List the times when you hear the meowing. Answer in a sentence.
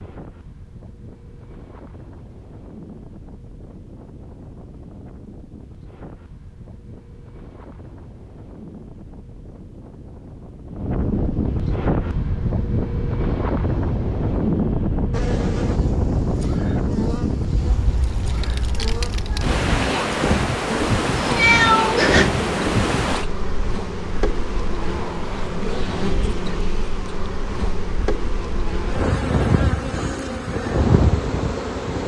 The meowing can be heard from 21.1 to 22.3 s.